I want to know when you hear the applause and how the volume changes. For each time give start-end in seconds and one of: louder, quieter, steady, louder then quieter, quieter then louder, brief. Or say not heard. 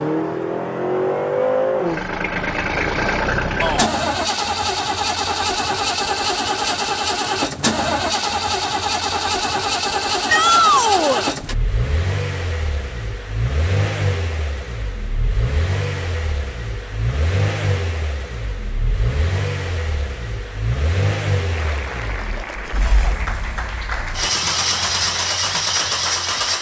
21.5-26.5 steady.